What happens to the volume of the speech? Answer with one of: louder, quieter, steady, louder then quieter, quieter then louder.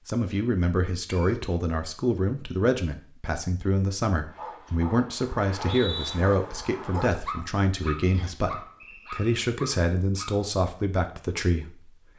steady.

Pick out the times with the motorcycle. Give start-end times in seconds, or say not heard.
not heard.